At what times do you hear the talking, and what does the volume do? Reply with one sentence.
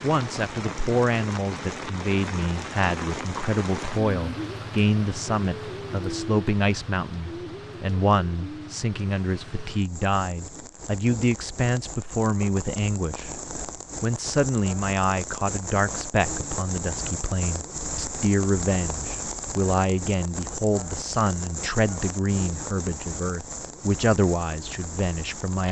The talking can be heard from 0.0 to 13.3 s, at a steady volume; and from 14.0 to 25.6 s, at a steady volume.